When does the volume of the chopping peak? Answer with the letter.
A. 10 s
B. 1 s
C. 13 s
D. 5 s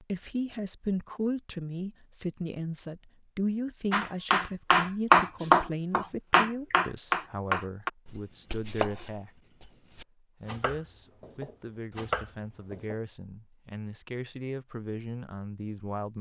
D.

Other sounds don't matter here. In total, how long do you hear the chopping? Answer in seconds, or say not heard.
9 s.